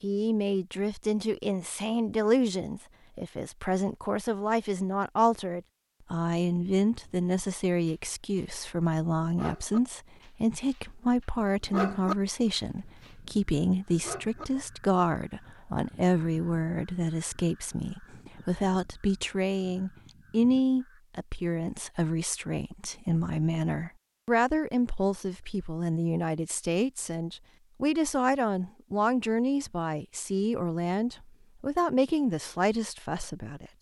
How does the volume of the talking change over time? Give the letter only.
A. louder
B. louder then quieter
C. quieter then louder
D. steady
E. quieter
D.